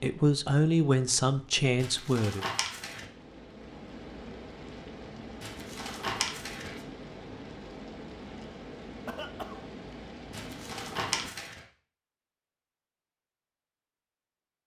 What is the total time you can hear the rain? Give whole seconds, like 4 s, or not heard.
11 s.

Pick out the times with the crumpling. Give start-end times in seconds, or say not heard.
1.8-3.0, 5.4-6.8, 10.3-11.6.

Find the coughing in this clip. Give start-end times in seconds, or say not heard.
9.1-9.7.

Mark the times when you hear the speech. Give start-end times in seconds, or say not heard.
0.0-2.5.